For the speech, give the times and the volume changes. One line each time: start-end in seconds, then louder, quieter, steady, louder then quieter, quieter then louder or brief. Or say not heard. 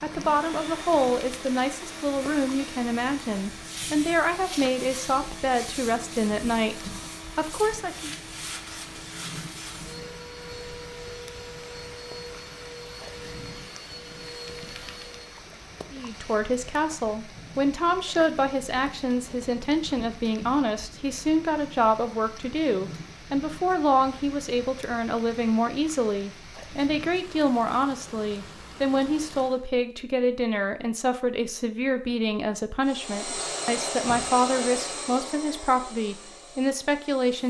0.0-8.1 steady
15.9-37.4 steady.